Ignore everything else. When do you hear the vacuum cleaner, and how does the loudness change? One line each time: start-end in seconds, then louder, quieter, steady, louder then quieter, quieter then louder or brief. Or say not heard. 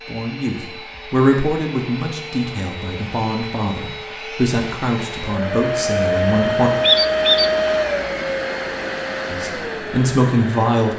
0.0-10.9 louder then quieter.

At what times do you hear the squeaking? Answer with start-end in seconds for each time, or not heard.
6.8-7.5.